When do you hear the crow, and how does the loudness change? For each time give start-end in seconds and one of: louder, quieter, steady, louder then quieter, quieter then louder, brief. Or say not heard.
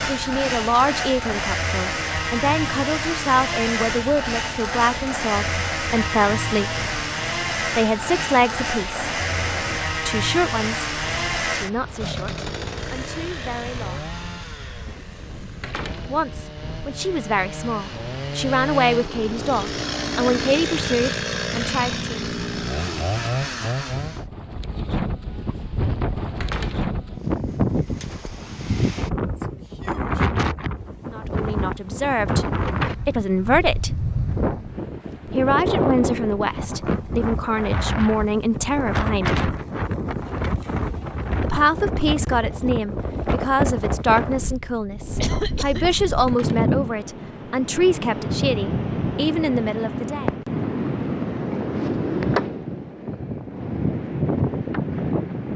not heard.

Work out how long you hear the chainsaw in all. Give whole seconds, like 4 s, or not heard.
24 s.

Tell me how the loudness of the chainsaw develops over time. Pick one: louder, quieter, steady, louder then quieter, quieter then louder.
quieter then louder.